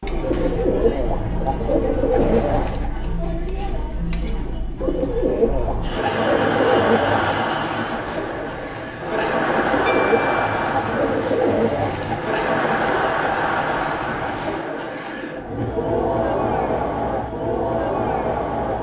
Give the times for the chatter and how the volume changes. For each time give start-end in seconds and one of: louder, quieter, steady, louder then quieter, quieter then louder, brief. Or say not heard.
0.0-18.7 louder.